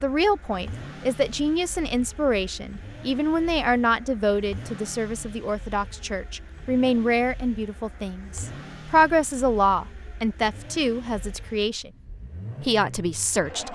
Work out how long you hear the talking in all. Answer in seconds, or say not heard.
13 s.